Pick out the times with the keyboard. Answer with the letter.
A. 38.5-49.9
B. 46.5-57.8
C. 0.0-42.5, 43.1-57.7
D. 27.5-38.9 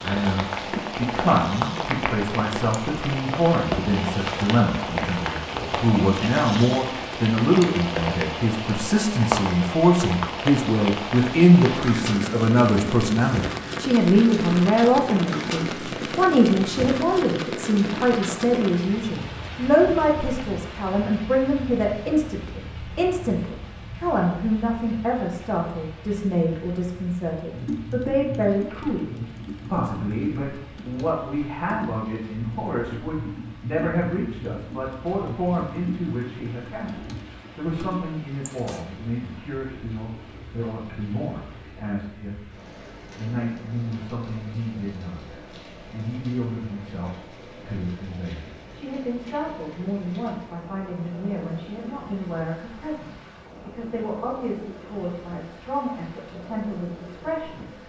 D.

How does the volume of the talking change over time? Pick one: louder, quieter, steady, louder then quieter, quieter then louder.
quieter.